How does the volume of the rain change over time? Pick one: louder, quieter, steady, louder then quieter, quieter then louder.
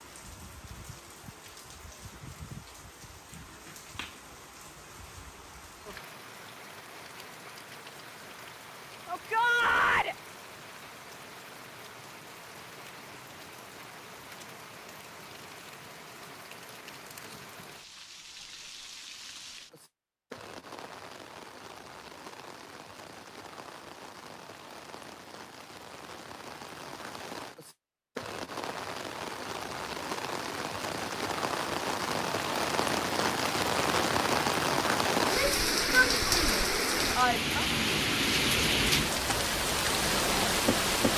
louder.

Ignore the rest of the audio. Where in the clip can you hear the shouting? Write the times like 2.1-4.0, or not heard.
9.1-10.2, 35.2-37.6.